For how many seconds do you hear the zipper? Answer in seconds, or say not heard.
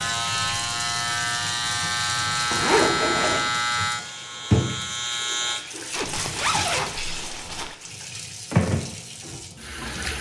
3 s.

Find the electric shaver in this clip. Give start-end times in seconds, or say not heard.
0.0-5.6.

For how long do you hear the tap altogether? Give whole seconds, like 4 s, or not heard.
10 s.